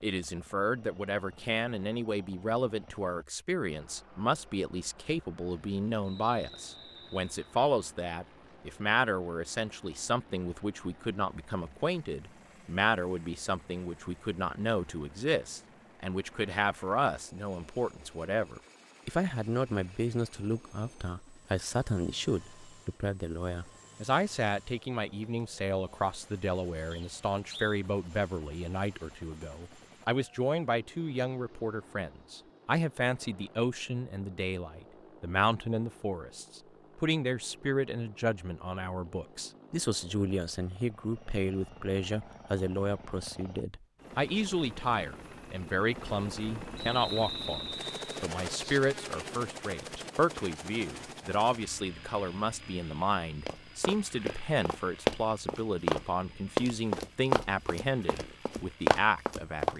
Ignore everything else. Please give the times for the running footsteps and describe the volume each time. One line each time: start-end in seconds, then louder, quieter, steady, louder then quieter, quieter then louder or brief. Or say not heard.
53.5-59.7 louder.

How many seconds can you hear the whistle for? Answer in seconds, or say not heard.
4 s.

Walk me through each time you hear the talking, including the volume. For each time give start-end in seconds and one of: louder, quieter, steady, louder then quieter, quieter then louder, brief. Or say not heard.
0.0-59.7 steady.